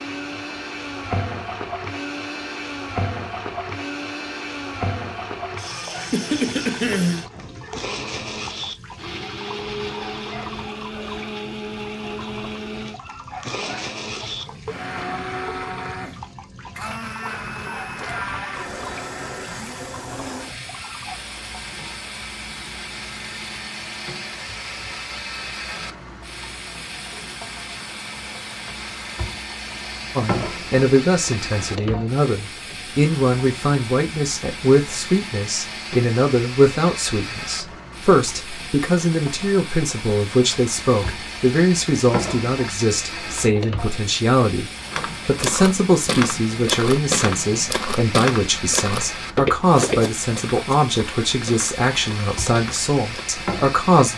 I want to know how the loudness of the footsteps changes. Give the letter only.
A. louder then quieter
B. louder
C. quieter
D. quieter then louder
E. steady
C.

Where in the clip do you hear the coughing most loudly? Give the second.
7 s.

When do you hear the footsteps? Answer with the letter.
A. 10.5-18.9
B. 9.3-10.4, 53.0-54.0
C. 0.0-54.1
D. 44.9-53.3
D.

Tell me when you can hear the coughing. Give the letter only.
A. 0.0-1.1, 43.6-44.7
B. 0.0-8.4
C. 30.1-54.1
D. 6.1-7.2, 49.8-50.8
D.